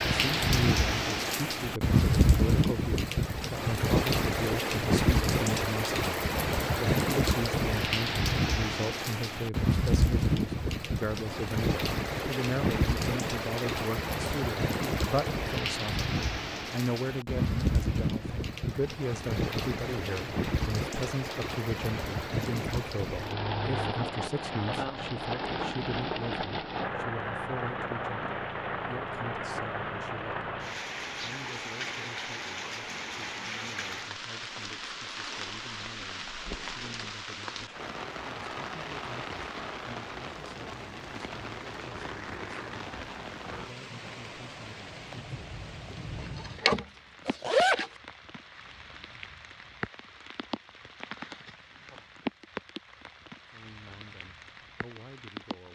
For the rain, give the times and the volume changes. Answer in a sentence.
The rain can be heard from 0.0 to 55.7 s, getting quieter.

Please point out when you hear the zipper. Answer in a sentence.
You can hear the zipper from 46.2 to 47.9 s.